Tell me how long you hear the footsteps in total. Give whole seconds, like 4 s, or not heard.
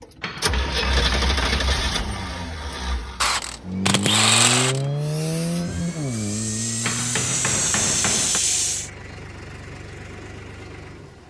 not heard.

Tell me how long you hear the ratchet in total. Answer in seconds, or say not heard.
2 s.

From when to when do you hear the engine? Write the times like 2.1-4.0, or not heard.
0.0-11.2.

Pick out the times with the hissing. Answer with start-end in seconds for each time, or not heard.
5.0-8.9.